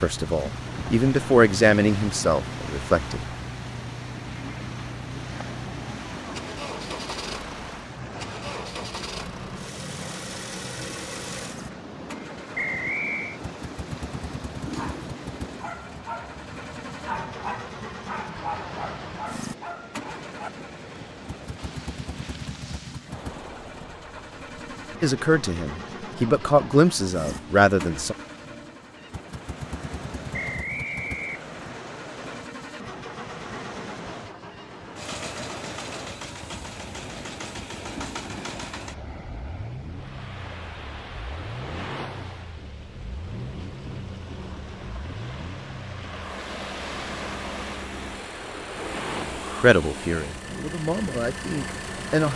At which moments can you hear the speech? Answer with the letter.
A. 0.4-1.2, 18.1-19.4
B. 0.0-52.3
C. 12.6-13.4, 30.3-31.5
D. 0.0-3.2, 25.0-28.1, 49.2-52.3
D.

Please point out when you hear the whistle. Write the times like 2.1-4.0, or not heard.
12.6-13.4, 30.3-31.5.